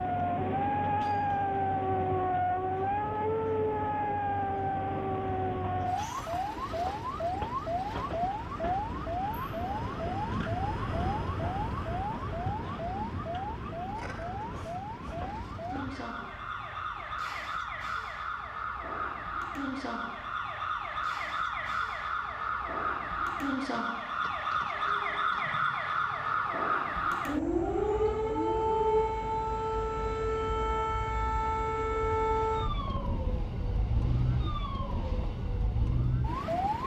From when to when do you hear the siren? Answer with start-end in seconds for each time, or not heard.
0.0-36.8.